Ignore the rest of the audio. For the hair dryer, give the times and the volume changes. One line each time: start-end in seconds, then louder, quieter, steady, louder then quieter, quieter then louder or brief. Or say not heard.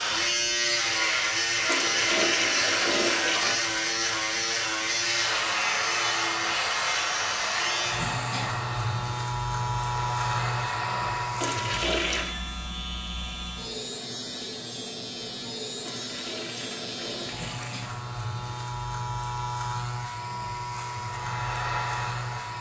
5.1-11.6 quieter then louder
20.9-22.5 brief.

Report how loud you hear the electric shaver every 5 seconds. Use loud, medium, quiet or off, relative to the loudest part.
loud, loud, medium, medium, medium.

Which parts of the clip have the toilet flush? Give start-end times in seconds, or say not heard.
1.6-3.6, 11.4-12.3, 15.8-17.8.